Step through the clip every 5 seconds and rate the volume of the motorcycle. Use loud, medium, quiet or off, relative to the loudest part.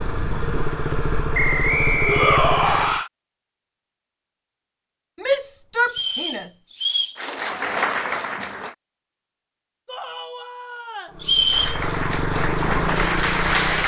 loud, off, loud.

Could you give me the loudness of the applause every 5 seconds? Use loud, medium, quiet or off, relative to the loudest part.
off, loud, loud.